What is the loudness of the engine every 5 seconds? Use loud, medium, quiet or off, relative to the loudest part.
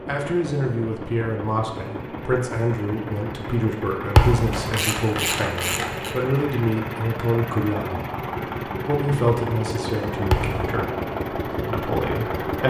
medium, loud, loud.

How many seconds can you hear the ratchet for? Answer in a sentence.
You can hear the ratchet for 2 seconds altogether.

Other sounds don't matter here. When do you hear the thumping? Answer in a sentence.
The thumping can be heard from 4.2 to 4.6 s and from 10.3 to 10.8 s.